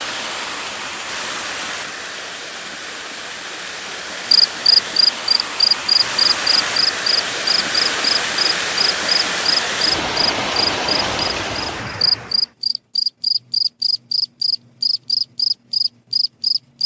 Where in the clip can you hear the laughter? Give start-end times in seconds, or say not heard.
not heard.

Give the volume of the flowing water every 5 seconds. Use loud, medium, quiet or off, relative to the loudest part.
medium, loud, loud, off.